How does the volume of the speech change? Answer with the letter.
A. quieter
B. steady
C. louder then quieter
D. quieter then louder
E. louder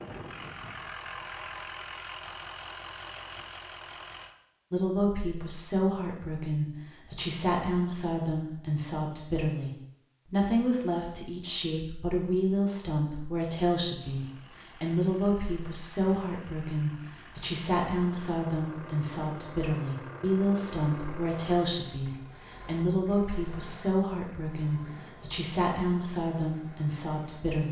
B.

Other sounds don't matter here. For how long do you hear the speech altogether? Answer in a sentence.
The speech can be heard for 23 seconds in total.